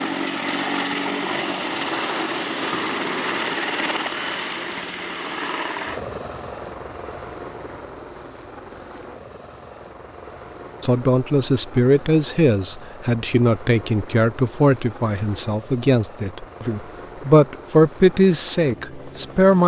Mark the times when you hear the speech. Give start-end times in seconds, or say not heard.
10.8-19.6.